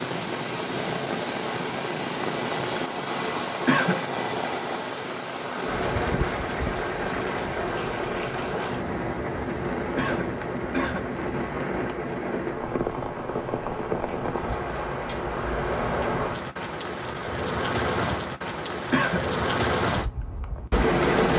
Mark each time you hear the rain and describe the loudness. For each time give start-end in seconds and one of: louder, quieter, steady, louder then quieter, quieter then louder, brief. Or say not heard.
0.0-21.3 steady.